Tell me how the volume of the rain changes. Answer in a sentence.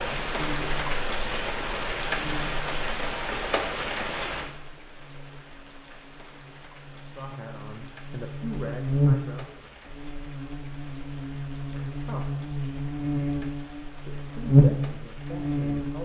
The volume of the rain goes down.